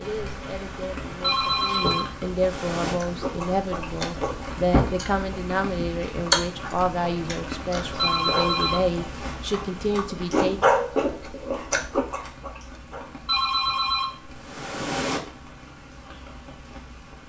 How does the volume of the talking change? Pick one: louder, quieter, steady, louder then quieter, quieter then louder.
louder.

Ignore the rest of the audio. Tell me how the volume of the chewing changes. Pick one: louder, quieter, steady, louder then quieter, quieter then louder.
quieter then louder.